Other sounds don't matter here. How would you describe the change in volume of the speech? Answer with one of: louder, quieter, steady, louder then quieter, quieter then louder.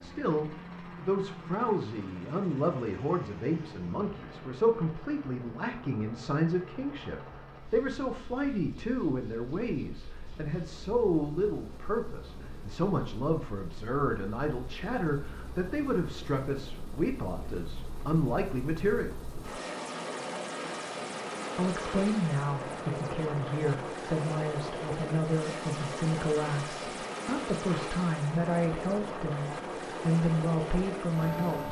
steady.